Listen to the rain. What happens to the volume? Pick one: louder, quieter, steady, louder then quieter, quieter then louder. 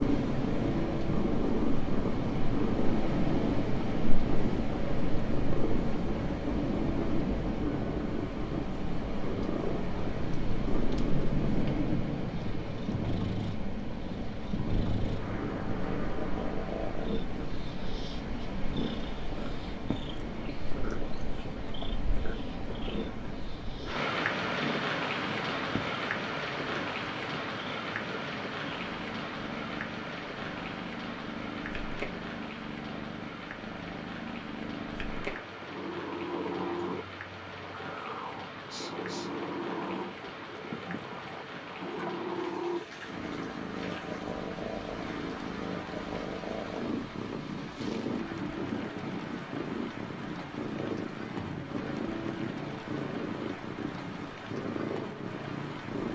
quieter.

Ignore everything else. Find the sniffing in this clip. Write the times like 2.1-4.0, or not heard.
38.6-39.3.